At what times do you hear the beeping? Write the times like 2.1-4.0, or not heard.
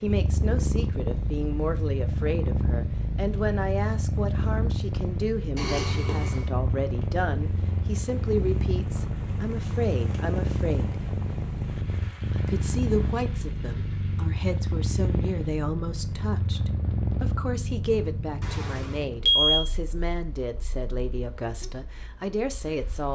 5.5-6.5, 18.4-19.6.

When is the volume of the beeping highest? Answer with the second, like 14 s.
19 s.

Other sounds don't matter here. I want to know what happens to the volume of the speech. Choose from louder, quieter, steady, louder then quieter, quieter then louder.
steady.